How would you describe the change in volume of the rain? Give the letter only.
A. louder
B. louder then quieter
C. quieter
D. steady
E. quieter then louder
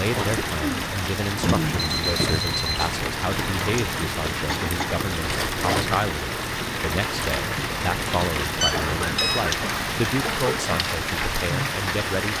D.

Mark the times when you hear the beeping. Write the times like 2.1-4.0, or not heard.
1.8-3.0, 8.6-9.4.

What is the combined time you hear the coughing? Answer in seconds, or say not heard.
5 s.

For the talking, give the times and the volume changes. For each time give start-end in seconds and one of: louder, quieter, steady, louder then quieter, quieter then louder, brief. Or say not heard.
0.0-12.3 steady.